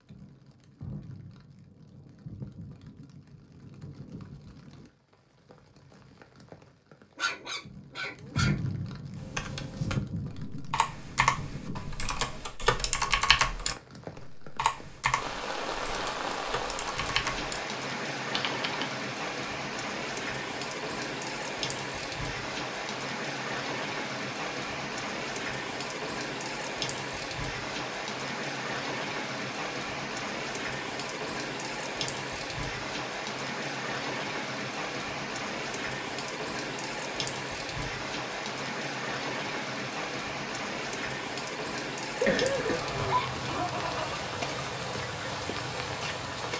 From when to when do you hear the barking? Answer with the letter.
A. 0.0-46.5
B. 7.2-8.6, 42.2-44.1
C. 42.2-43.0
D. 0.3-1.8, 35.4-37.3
B.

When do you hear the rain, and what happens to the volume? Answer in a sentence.
You can hear the rain from 0.0 to 46.5 s, getting louder.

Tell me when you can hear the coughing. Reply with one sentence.
The coughing can be heard from 42.2 to 43.0 s.